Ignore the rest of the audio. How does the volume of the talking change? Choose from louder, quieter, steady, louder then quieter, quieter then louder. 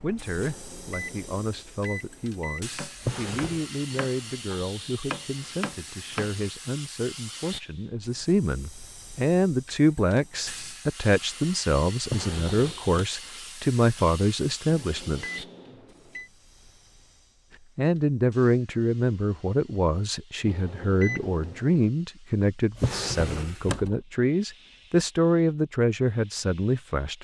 louder.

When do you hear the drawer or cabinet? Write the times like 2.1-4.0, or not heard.
3.0-3.6, 12.0-13.0, 22.8-23.9.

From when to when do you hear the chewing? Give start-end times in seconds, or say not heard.
not heard.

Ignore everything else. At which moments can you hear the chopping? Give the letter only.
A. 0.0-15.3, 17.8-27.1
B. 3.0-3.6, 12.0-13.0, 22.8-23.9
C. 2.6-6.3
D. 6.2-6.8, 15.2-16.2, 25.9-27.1
C.